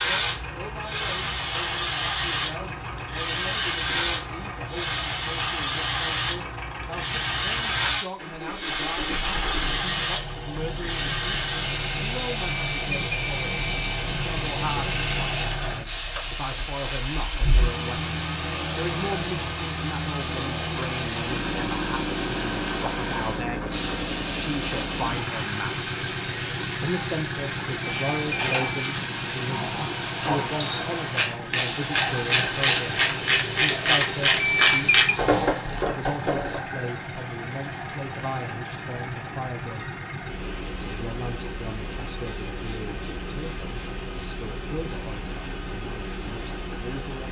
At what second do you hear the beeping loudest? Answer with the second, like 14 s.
35 s.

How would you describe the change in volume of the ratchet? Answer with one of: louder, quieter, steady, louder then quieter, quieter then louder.
louder.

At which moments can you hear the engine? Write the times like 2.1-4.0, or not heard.
0.0-47.2.